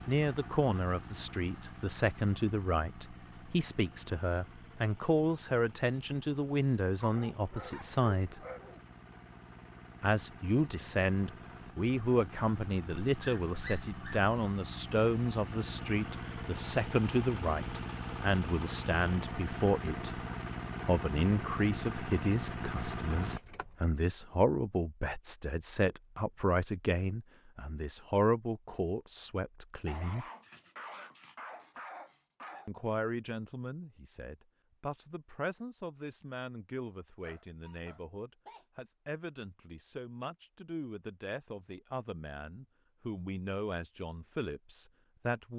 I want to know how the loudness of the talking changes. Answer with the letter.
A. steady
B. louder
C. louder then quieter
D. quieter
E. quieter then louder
D.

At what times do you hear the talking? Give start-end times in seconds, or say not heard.
0.1-8.4, 10.0-20.2, 20.9-30.2, 32.6-45.5.